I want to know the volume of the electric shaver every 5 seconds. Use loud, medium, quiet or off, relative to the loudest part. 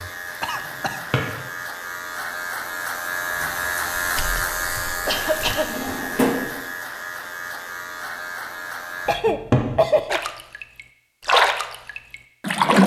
loud, loud, off.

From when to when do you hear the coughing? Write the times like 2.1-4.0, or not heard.
0.4-1.0, 5.0-5.8, 9.1-10.2.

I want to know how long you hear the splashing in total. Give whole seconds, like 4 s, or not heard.
4 s.